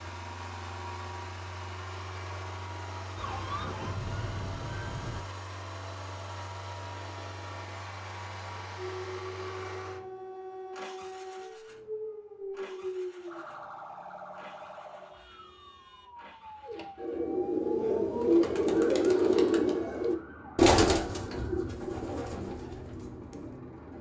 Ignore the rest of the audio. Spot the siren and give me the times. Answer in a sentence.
You can hear the siren from 3.1 to 5.2 s and from 8.8 to 21.8 s.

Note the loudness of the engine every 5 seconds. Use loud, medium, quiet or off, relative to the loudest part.
loud, loud, medium, quiet, loud.